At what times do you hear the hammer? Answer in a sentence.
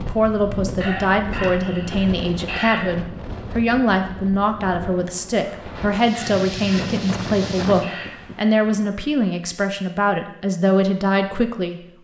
The hammer can't be heard in this clip.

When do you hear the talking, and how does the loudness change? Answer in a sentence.
You can hear the talking from 0.0 to 11.8 s, at a steady volume.